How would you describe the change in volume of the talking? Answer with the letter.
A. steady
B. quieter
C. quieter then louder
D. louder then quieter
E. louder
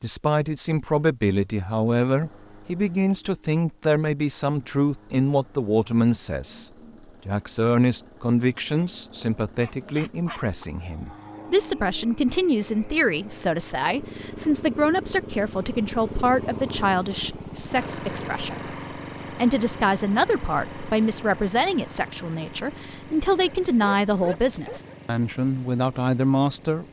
A.